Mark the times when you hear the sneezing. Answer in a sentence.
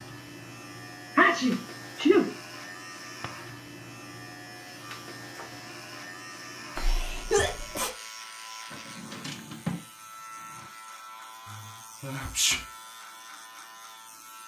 You can hear the sneezing from 1.1 to 2.3 s, from 6.8 to 7.9 s and from 12.0 to 12.6 s.